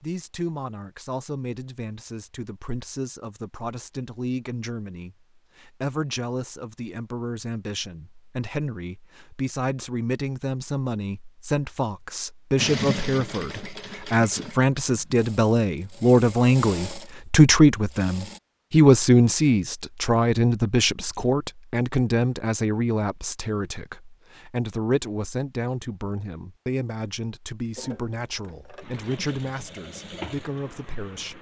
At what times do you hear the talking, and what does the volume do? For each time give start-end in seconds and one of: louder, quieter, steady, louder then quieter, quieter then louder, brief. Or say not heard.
0.0-31.3 louder then quieter.